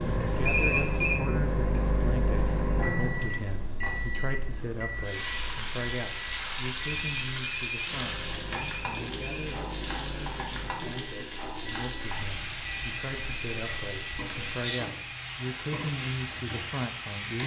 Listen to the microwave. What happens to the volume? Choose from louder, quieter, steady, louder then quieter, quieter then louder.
quieter.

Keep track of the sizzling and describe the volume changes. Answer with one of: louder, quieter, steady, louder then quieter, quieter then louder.
louder.